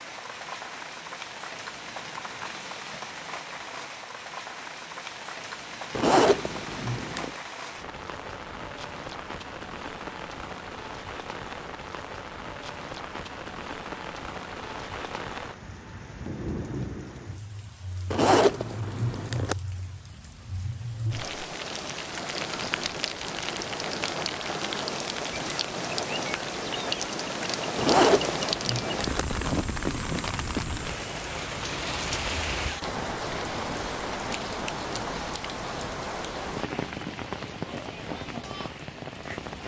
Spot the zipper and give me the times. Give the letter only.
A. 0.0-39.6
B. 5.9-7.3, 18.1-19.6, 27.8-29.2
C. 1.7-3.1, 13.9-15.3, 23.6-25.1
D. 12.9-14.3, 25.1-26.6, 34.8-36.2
B.